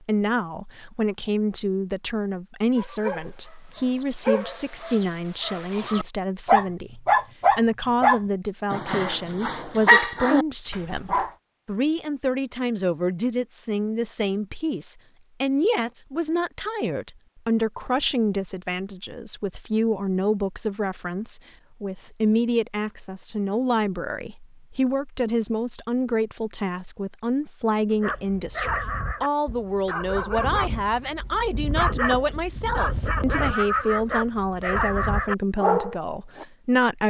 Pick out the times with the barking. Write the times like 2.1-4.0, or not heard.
2.8-11.3, 28.0-36.5.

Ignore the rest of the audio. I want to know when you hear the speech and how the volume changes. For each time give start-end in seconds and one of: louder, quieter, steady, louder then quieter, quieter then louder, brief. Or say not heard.
0.0-37.0 steady.